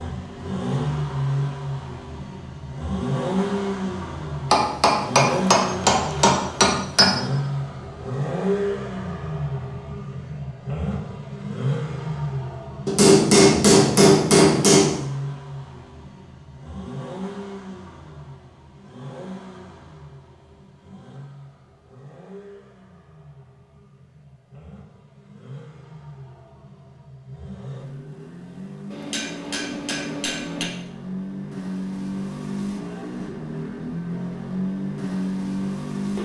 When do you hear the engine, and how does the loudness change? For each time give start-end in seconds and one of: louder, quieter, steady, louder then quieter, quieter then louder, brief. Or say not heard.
0.0-36.2 quieter then louder.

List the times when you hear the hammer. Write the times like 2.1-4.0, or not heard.
4.5-7.1, 12.8-14.9, 28.9-30.7.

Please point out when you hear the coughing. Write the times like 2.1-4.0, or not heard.
not heard.